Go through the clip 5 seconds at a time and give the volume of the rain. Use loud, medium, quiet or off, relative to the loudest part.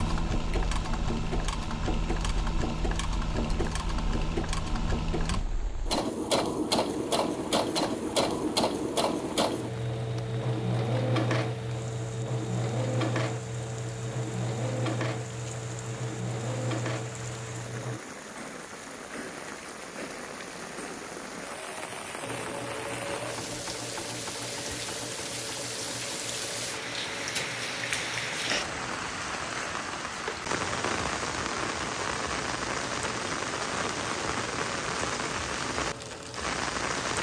quiet, quiet, quiet, medium, medium, loud, loud, loud.